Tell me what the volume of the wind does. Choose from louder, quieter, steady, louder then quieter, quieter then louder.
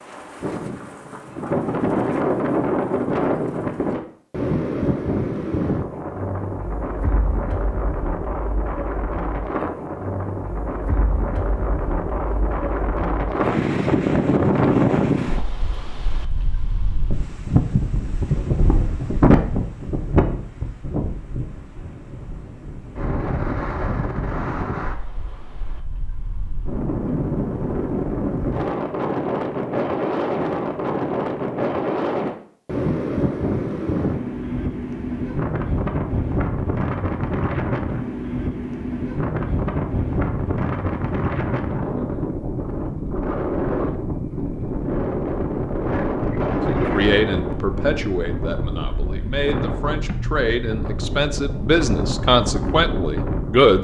steady.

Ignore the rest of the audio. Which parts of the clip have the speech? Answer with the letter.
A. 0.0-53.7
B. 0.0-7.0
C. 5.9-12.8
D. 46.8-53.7
D.